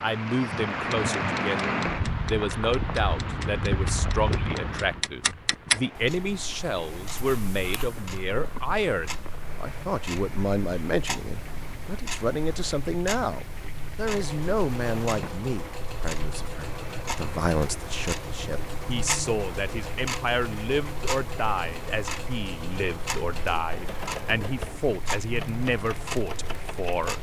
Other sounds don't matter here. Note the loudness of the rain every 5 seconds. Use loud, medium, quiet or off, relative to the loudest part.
loud, quiet, quiet, quiet, quiet, quiet.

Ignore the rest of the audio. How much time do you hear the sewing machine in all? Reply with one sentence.
You can hear the sewing machine for 13 seconds altogether.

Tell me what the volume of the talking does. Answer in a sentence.
The loudness of the talking stays about the same.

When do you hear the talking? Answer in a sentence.
You can hear the talking from 0.0 to 27.1 s.